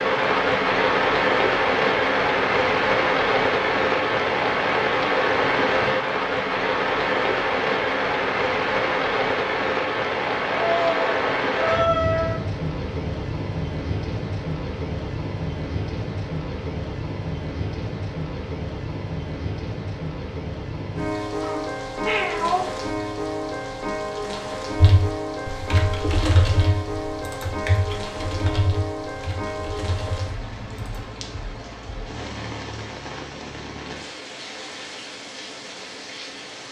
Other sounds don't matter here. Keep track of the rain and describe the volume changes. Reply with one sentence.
The loudness of the rain goes down.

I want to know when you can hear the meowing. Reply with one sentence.
The meowing can be heard from 10.5 to 12.4 s and from 21.4 to 22.6 s.